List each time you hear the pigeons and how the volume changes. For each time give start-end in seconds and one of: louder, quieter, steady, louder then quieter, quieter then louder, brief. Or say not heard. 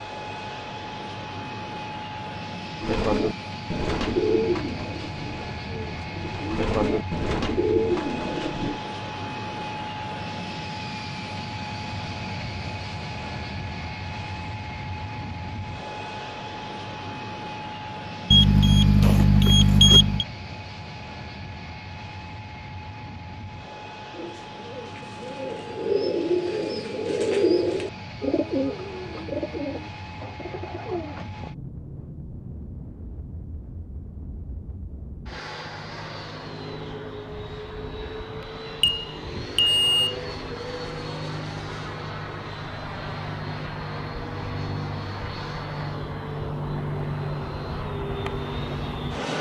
2.8-8.8 quieter then louder
24.1-31.5 louder then quieter.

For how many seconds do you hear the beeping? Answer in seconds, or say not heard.
3 s.